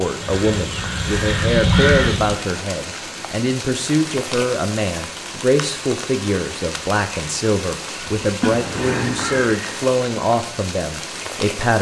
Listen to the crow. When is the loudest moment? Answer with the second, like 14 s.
2 s.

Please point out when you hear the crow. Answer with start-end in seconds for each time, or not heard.
0.0-2.4, 7.8-9.7.